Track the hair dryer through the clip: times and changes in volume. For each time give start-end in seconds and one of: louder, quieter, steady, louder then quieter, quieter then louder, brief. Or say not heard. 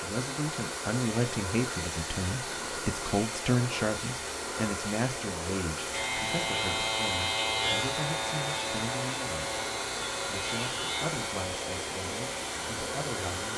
0.0-13.5 steady.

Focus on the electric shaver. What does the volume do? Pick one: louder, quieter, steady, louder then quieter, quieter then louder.
quieter.